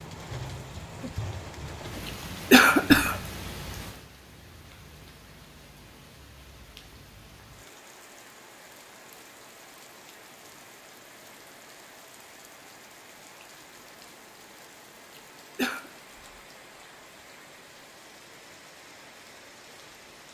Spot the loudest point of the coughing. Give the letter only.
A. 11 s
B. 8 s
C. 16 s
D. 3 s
D.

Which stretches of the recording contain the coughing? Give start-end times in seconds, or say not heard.
2.0-3.1, 15.2-15.9.